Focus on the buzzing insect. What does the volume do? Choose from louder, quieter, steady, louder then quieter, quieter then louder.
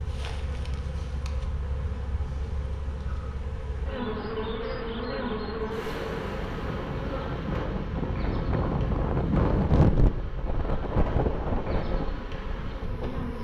louder then quieter.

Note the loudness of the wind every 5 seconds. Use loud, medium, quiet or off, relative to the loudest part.
quiet, loud, loud.